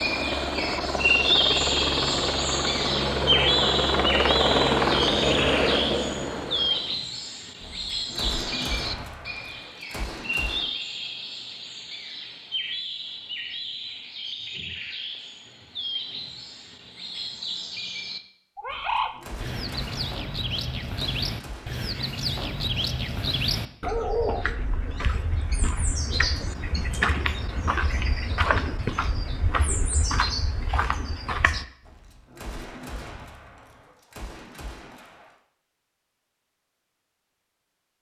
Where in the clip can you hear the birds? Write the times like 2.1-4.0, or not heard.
0.0-31.6.